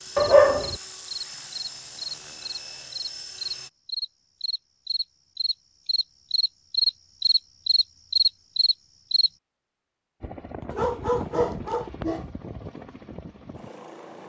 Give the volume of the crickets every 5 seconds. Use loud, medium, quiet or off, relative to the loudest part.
medium, loud, off.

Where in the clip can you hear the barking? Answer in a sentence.
The barking can be heard from 0.1 to 0.8 s and from 10.7 to 12.2 s.